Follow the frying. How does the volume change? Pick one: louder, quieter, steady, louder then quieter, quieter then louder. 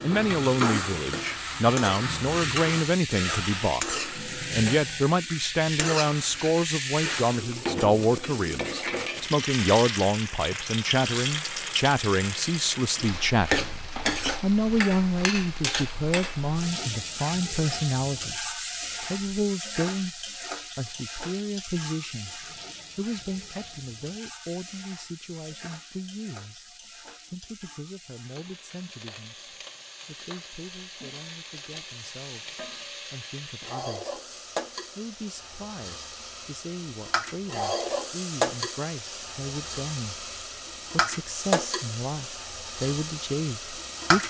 quieter then louder.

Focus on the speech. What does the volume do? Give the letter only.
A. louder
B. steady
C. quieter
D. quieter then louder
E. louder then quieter
D.